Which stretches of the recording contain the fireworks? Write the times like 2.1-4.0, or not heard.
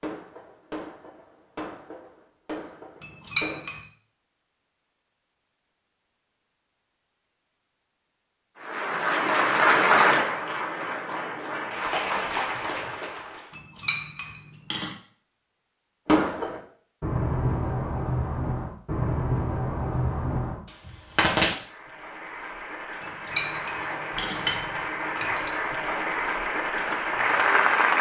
0.0-3.7, 16.1-21.6.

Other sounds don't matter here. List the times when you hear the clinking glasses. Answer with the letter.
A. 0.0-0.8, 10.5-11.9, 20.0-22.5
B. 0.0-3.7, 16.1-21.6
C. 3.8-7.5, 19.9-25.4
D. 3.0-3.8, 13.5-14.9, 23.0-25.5
D.